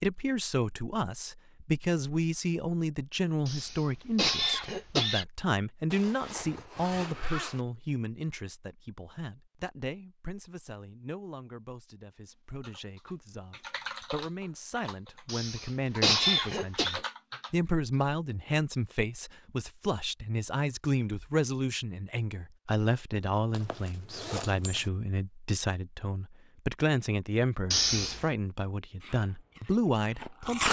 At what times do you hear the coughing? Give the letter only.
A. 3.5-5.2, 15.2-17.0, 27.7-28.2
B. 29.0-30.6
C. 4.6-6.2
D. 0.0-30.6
A.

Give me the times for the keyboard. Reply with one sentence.
You can hear the keyboard from 12.6 to 18.1 s.